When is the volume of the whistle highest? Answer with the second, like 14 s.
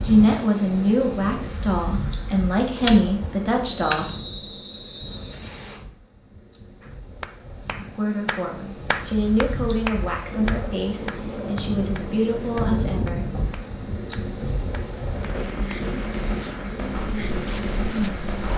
4 s.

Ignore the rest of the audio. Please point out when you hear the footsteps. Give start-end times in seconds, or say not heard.
16.9-18.5.